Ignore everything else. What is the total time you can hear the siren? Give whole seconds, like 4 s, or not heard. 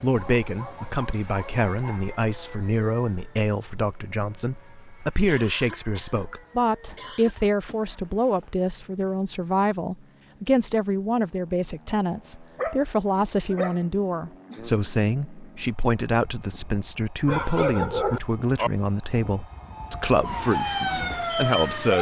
2 s.